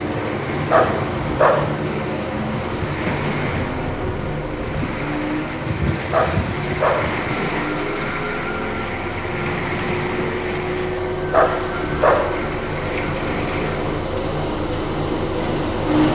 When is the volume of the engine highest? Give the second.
16 s.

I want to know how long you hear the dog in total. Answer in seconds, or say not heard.
3 s.